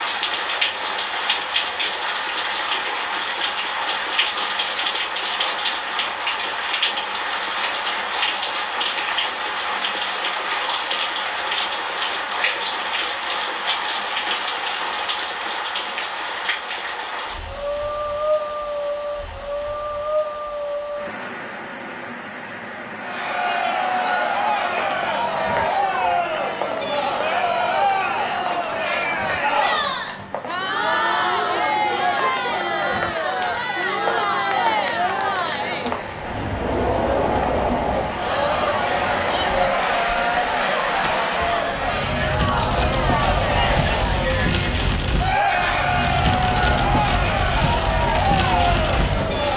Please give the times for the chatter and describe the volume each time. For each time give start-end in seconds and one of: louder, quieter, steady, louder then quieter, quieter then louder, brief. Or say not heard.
22.9-49.5 steady.